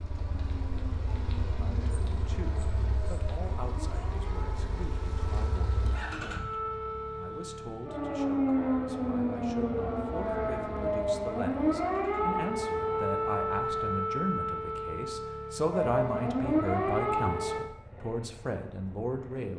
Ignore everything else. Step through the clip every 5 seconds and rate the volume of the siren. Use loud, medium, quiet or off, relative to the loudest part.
quiet, loud, loud, loud.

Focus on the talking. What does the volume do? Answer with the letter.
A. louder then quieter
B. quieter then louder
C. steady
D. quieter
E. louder
E.